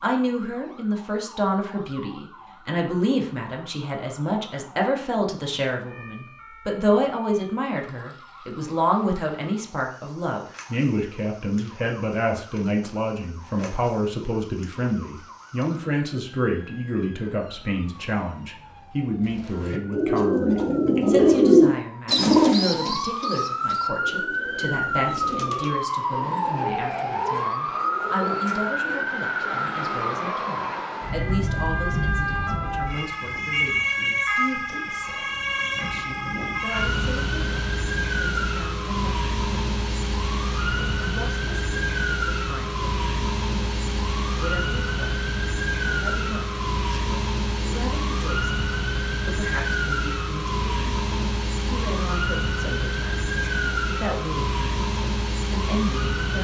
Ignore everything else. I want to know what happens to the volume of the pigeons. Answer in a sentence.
The volume of the pigeons goes down.